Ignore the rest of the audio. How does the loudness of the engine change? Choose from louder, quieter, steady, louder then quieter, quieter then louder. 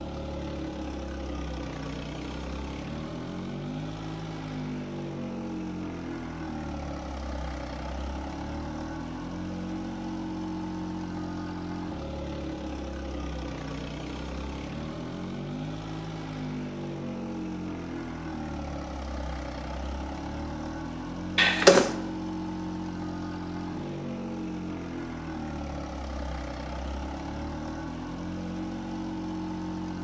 steady.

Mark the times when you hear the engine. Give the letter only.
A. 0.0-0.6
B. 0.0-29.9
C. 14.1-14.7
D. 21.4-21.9
B.